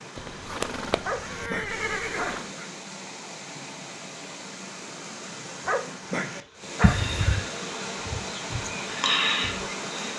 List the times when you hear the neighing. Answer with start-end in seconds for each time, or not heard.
0.1-2.5, 6.8-7.5.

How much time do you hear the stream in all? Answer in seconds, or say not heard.
10 s.